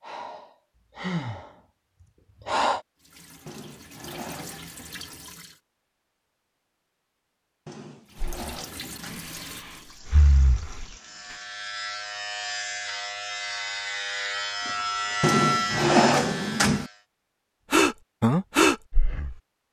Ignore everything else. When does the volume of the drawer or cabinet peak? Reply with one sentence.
The loudest moment of the drawer or cabinet is at 16 seconds.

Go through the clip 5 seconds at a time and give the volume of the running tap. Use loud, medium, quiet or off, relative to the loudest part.
loud, loud, medium, off.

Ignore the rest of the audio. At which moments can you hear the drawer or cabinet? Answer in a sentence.
The drawer or cabinet can be heard from 3.5 to 4.7 s, from 7.7 to 9.3 s and from 15.2 to 16.9 s.